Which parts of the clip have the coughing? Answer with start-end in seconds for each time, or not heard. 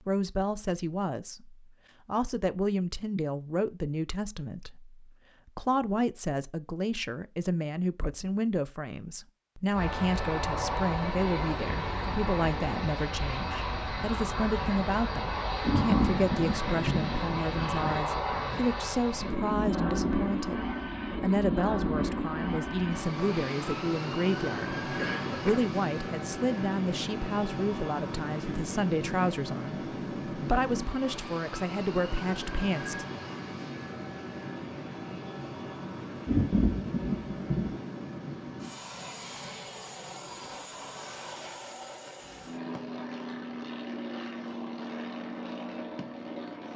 24.9-25.7.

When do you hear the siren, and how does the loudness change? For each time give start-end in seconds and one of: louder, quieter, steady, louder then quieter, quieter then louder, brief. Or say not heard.
not heard.